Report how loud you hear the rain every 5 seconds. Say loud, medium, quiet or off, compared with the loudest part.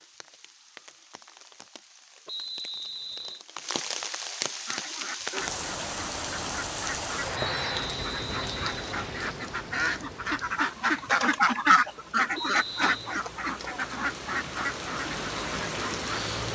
medium, loud, medium, loud.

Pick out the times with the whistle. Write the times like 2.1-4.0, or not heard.
2.2-3.5, 7.3-9.3, 12.3-13.2.